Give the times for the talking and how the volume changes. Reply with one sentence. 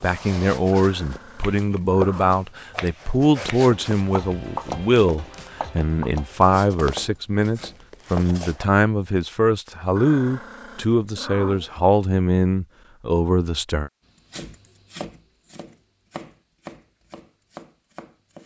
The talking can be heard from 0.0 to 13.9 s, at a steady volume.